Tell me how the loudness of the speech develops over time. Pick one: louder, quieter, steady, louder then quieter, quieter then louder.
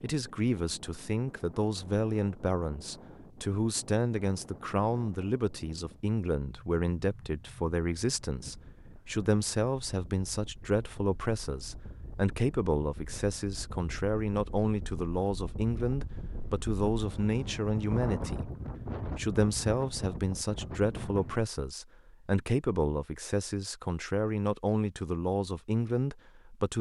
steady.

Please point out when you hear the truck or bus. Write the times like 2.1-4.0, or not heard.
not heard.